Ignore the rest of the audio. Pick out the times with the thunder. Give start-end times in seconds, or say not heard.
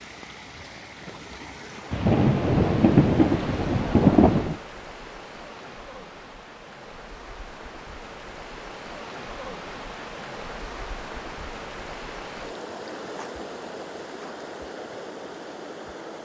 1.9-4.6.